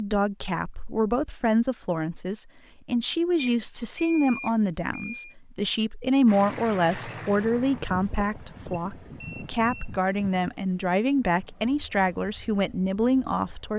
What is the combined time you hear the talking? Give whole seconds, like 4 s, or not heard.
14 s.